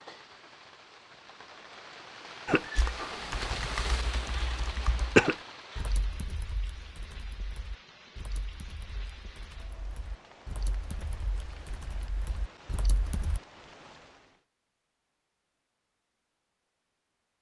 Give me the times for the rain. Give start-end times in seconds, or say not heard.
0.0-14.4.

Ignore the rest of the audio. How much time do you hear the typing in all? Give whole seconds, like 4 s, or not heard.
11 s.